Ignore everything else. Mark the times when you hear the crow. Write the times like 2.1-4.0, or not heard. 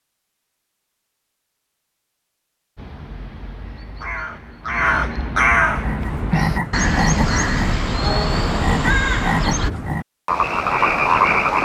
2.8-9.7.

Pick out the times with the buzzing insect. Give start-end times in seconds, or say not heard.
not heard.